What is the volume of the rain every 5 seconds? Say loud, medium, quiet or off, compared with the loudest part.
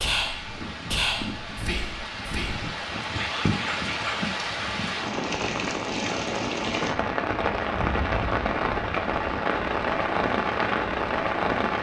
medium, loud, loud.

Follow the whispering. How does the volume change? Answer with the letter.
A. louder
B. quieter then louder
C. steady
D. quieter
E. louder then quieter
B.